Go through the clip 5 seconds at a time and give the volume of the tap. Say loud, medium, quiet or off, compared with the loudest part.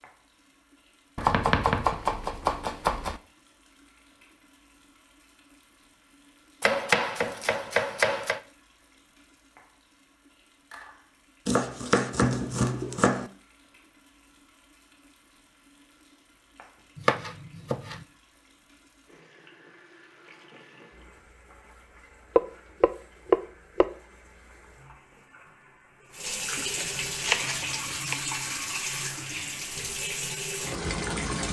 quiet, quiet, quiet, quiet, quiet, loud, loud.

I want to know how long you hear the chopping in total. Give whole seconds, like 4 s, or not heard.
10 s.